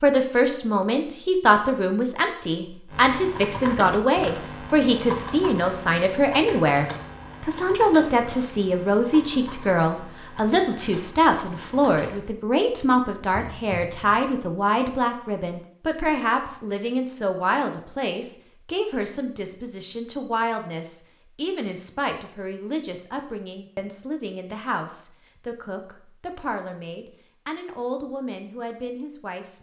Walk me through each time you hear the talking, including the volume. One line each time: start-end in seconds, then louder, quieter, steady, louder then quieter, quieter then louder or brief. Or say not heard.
0.0-29.5 quieter.